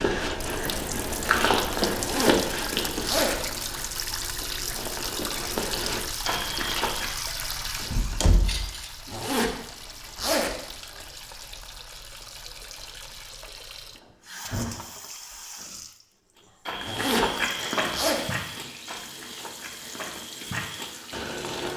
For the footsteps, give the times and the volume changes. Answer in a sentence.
The footsteps can be heard from 0.0 to 7.2 s, getting quieter then louder; and from 16.6 to 21.7 s, getting quieter then louder.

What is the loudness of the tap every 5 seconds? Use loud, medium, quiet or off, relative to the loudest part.
loud, loud, medium, medium, medium.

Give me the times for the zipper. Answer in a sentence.
The zipper can be heard from 1.9 to 3.5 s, from 9.1 to 11.1 s and from 16.8 to 18.2 s.